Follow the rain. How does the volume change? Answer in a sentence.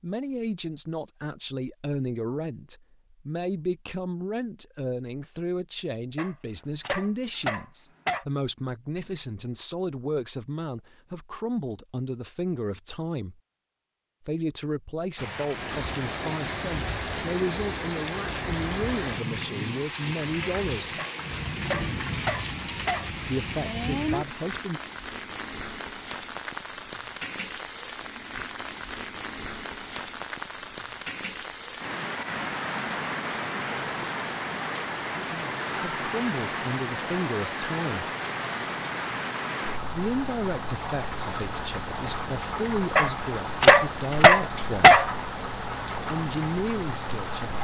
The volume of the rain stays about the same.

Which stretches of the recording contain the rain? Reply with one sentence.
The rain can be heard from 15.2 to 47.5 s.